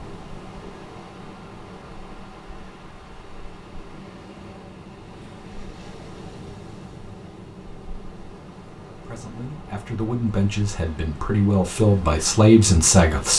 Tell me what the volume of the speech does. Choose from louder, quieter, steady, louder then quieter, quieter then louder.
louder.